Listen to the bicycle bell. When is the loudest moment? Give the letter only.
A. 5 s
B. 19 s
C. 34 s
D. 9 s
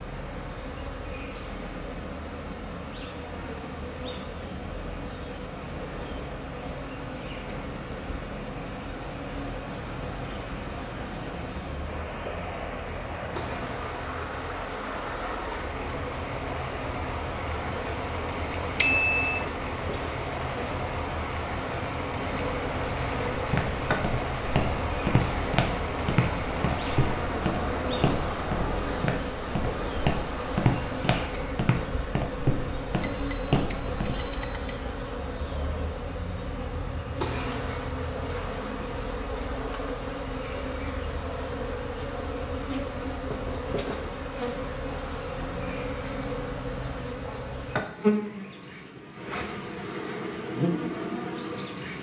B.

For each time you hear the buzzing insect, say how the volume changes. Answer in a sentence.
You can hear the buzzing insect from 0.0 to 51.9 s, getting louder.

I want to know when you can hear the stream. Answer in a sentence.
You can hear the stream from 0.0 to 31.3 s.